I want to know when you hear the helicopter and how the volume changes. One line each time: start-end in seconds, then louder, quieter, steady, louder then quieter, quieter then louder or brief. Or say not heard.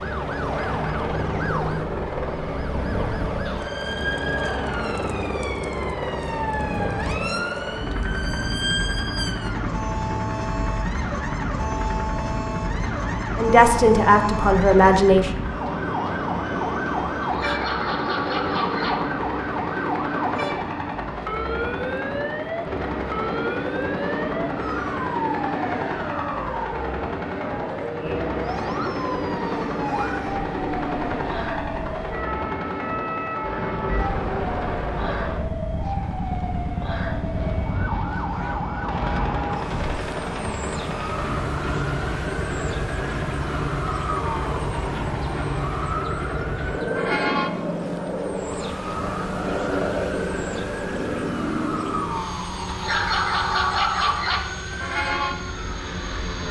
0.0-56.4 steady.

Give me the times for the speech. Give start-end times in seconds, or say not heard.
13.3-15.3.